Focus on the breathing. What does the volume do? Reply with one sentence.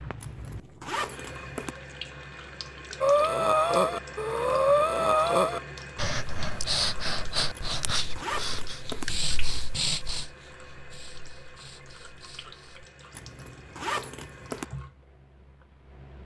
The loudness of the breathing goes down.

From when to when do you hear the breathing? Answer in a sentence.
The breathing can be heard from 3.0 to 12.8 s.